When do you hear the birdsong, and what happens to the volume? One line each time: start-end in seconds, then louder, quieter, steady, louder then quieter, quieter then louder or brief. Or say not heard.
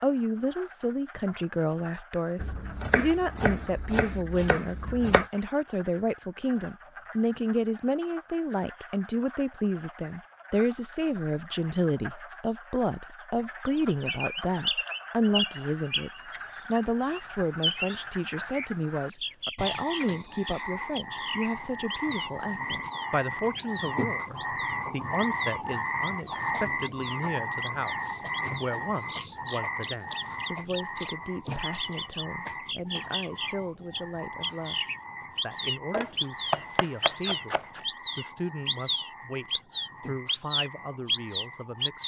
13.8-42.0 quieter then louder.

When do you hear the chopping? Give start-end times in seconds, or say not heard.
2.4-5.2, 35.9-37.8.